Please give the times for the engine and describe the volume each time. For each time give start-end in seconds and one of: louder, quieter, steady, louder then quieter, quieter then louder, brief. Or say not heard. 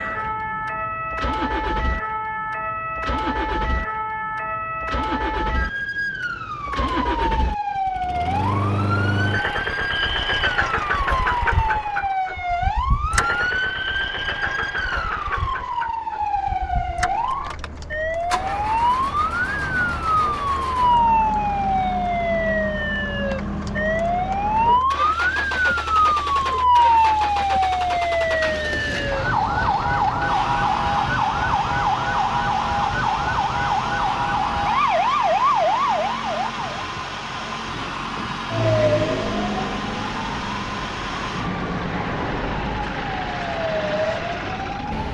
0.0-45.1 steady.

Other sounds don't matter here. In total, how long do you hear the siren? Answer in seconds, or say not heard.
45 s.